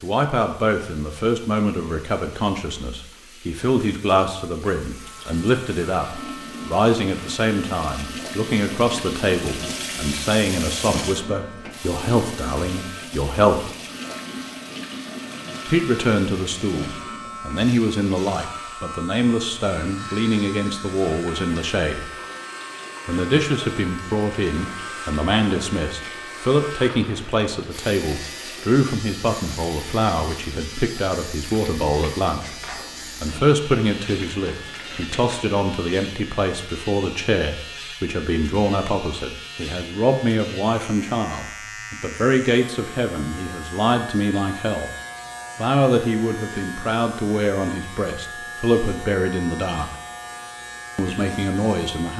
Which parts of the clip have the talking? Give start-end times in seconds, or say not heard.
0.0-13.7, 15.7-22.1, 23.1-44.9, 45.5-49.9, 51.0-52.1.